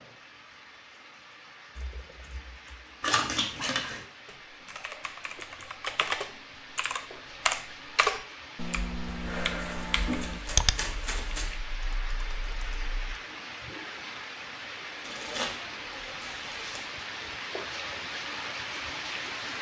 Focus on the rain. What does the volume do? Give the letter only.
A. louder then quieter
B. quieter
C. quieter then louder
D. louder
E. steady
D.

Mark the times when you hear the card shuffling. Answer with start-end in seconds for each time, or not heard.
3.0-4.0, 9.1-11.6, 15.0-16.9.